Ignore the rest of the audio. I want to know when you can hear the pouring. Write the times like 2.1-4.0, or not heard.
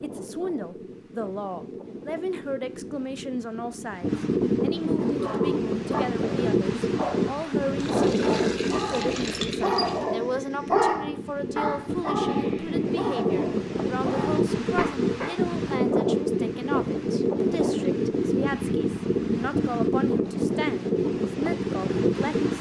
7.8-10.2.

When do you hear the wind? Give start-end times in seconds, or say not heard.
0.0-22.5.